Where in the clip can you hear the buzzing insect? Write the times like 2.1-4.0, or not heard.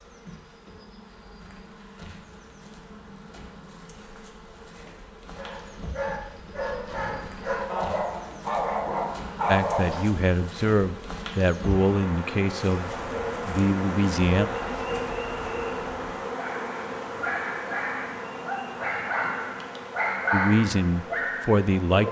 0.0-22.0.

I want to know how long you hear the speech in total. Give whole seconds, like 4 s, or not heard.
7 s.